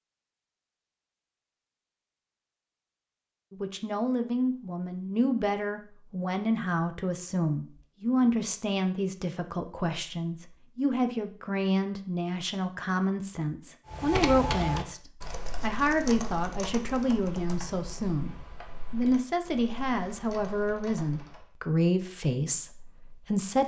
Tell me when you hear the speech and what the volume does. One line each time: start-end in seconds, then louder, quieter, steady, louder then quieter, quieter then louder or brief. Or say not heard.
3.5-23.6 steady.